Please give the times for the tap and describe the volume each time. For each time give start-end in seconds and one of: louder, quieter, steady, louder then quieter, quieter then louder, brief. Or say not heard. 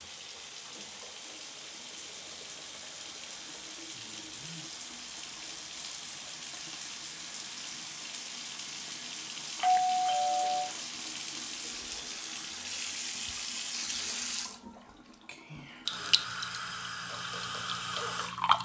0.0-18.5 louder.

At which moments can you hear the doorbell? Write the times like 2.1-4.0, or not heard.
9.6-10.8.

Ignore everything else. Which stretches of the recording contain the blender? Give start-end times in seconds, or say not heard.
not heard.